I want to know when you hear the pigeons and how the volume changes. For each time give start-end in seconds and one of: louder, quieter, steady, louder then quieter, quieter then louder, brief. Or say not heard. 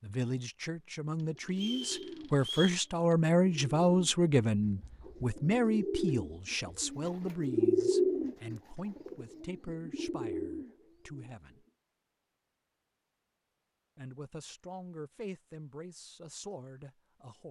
1.1-11.6 louder then quieter.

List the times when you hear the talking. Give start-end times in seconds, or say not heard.
0.0-11.7, 13.9-17.4.